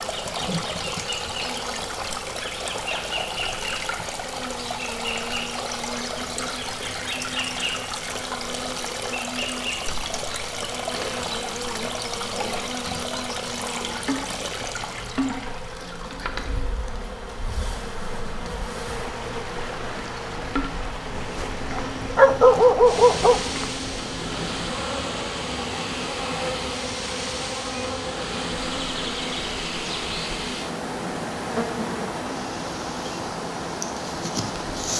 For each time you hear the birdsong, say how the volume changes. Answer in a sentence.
The birdsong can't be heard in this clip.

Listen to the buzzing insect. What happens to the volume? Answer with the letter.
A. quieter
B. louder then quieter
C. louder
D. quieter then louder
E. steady
E.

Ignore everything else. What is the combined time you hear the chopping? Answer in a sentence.
You can't hear the chopping here.